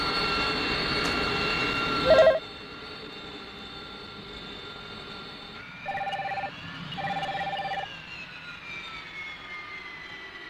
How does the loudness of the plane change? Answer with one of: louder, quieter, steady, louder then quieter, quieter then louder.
quieter.